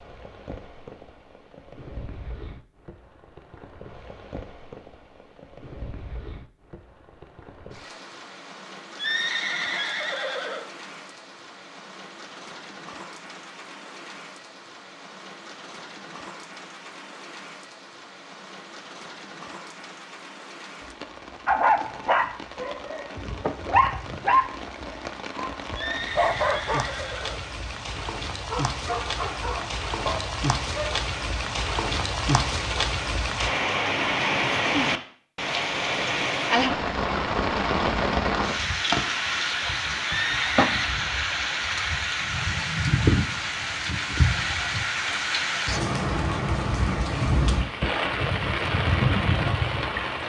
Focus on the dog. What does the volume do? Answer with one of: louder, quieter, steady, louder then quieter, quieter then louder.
quieter.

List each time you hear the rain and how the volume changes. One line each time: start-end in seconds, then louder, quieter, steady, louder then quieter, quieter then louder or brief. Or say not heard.
0.0-50.2 louder.